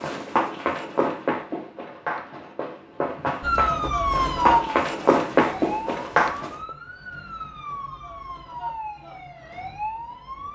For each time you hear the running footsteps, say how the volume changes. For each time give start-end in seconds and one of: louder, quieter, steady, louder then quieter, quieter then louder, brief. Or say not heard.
0.0-6.5 quieter then louder.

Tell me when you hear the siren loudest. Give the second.
4 s.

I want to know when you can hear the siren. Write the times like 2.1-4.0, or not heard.
3.4-10.5.